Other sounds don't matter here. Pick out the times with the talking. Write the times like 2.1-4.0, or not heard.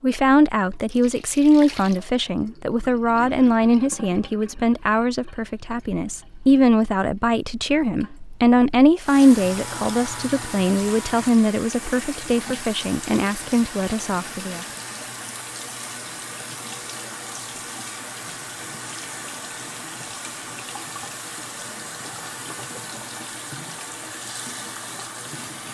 0.0-14.7.